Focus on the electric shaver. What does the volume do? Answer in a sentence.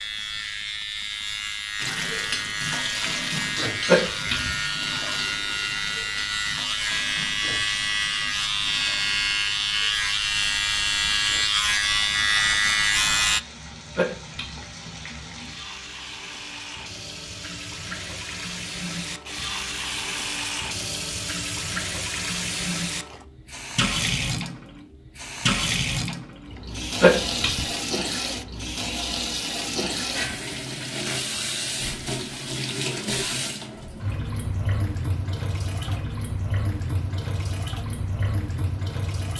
The loudness of the electric shaver goes up.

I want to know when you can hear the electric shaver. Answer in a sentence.
The electric shaver can be heard from 0.0 to 13.4 s.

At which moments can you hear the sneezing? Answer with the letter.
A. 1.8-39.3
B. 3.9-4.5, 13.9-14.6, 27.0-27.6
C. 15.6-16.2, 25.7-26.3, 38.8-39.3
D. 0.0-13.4
B.